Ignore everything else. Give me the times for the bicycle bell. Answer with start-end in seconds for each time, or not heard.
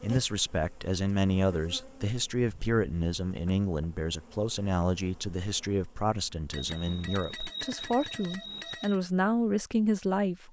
6.5-9.0.